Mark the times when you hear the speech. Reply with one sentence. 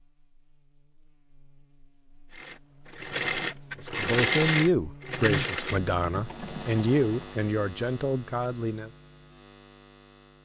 You can hear the speech from 3.8 to 8.9 s.